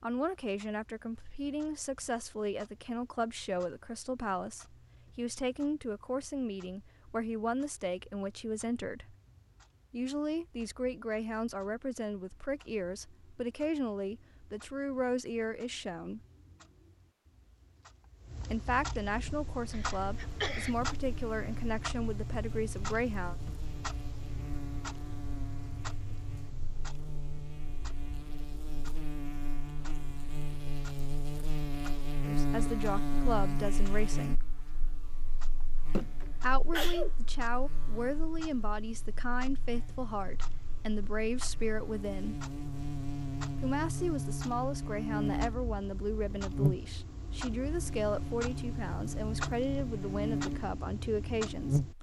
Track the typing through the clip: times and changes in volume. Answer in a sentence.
The typing can't be heard in this clip.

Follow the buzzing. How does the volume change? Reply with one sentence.
The loudness of the buzzing goes up.